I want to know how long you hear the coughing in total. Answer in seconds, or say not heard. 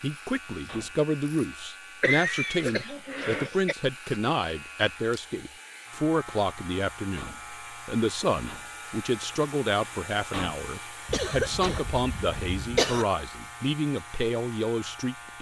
4 s.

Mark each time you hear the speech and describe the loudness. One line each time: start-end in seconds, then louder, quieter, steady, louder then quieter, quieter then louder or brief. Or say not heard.
0.0-15.3 steady.